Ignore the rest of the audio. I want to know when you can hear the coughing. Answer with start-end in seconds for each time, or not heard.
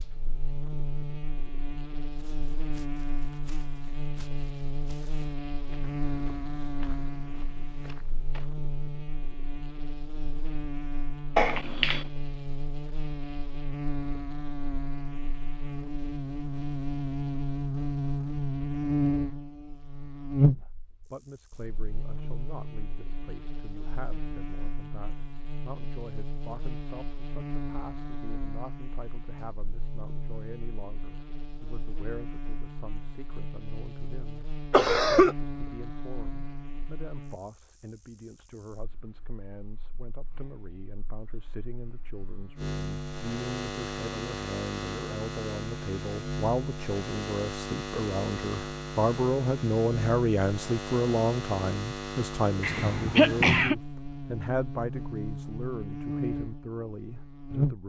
11.3-12.0, 34.7-35.4, 52.6-53.8.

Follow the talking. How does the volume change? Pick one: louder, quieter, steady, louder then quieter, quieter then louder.
louder.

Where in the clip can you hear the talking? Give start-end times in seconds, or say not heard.
20.4-57.8.